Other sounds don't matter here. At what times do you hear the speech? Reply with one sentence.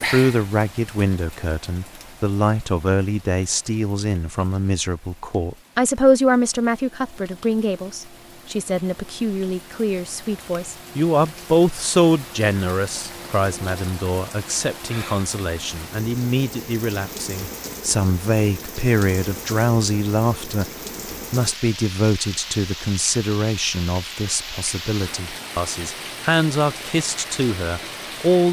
You can hear the speech from 0.0 to 20.6 s and from 21.3 to 28.4 s.